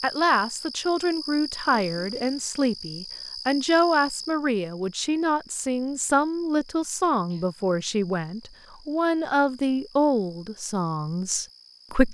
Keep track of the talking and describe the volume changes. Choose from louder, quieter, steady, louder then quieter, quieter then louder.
steady.